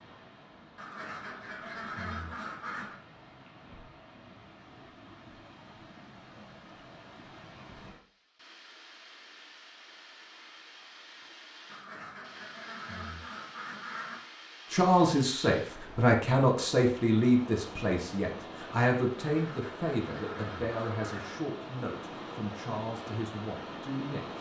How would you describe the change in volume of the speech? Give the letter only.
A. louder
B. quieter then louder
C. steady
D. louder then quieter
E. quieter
E.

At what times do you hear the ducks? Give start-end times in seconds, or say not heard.
0.8-3.0, 11.7-14.2, 19.2-21.4.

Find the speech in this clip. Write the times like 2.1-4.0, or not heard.
14.7-24.3.